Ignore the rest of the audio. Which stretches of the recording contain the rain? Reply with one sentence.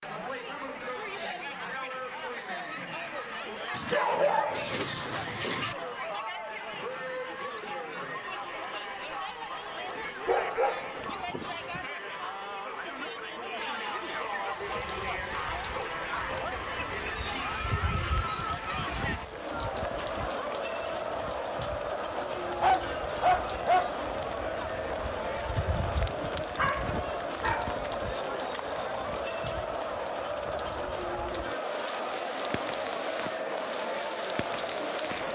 You can hear the rain from 14.4 to 35.3 s.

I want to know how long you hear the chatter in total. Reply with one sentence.
The chatter can be heard for 35 seconds in total.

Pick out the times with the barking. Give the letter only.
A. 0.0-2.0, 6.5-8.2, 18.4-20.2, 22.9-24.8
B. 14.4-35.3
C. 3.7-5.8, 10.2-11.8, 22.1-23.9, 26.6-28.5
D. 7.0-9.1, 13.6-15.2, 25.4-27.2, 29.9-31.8
C.